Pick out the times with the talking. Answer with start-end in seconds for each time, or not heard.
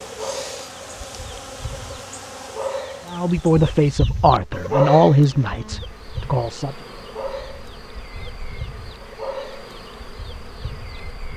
3.0-6.8.